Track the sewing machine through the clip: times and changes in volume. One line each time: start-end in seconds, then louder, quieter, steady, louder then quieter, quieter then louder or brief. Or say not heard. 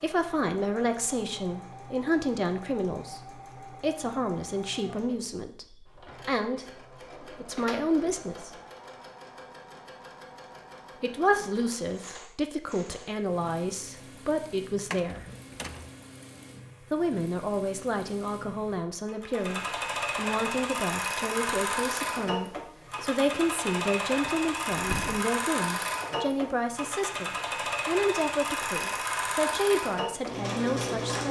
0.0-31.2 louder.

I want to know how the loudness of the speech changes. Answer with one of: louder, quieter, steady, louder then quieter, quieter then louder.
steady.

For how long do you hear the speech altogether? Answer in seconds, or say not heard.
27 s.